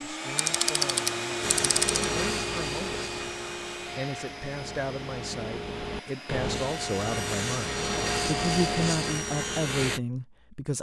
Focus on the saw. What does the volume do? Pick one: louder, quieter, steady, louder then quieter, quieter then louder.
quieter then louder.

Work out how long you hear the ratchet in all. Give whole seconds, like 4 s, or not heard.
2 s.